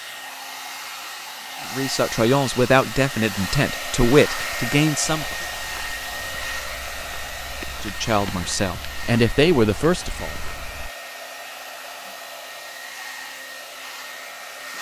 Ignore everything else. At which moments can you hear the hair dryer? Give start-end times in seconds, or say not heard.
0.0-14.7.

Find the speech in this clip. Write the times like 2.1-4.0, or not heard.
1.7-5.3, 7.8-10.3.